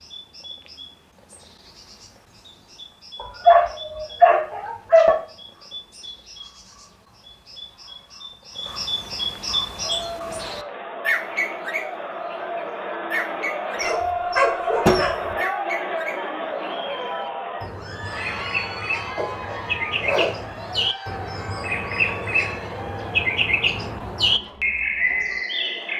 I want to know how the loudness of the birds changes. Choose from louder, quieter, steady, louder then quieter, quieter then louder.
louder.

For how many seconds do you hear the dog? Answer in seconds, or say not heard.
5 s.